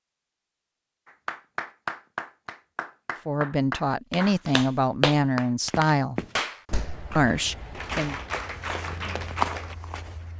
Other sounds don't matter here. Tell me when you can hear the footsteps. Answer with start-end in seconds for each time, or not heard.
5.7-10.3.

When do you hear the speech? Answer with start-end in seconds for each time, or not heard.
3.2-6.2, 7.2-8.2.